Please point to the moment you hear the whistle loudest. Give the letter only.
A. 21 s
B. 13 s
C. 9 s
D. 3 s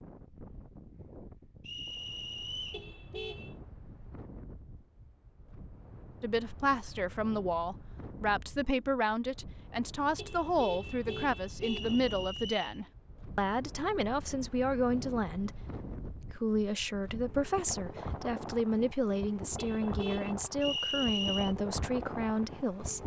A.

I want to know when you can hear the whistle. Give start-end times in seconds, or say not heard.
1.6-2.9, 11.6-12.8, 20.6-21.6.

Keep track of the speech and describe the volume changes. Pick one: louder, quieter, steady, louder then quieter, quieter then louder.
steady.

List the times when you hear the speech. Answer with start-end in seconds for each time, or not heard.
6.2-23.0.